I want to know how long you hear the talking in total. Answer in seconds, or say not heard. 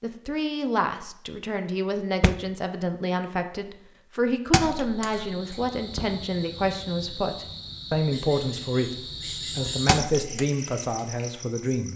11 s.